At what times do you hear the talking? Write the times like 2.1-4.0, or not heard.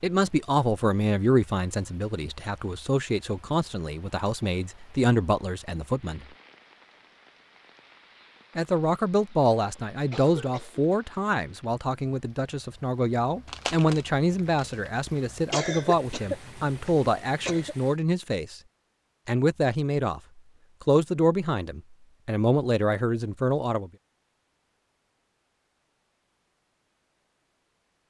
0.0-6.2, 8.6-18.6, 19.2-23.9.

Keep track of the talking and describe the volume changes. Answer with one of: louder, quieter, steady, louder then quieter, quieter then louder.
steady.